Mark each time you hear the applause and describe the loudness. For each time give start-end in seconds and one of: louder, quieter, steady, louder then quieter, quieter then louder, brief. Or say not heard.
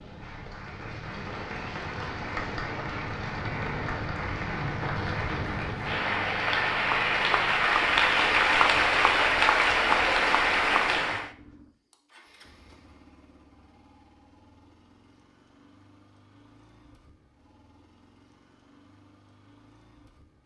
0.0-11.3 louder.